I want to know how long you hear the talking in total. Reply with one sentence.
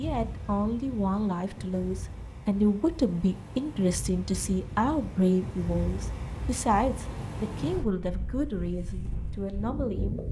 The talking can be heard for 10 seconds in total.